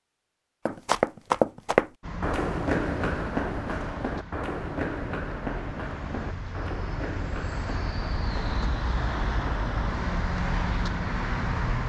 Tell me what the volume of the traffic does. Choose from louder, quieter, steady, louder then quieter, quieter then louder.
louder.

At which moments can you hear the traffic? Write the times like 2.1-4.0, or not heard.
2.0-11.8.